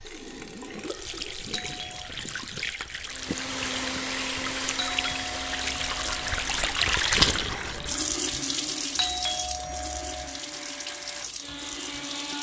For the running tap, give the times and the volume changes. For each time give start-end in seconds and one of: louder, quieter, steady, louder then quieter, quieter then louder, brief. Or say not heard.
0.0-12.3 louder then quieter.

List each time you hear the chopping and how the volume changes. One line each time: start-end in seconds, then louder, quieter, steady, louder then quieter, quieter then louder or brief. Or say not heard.
not heard.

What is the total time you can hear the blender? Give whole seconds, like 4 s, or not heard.
9 s.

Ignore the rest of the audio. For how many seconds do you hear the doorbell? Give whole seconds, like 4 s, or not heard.
4 s.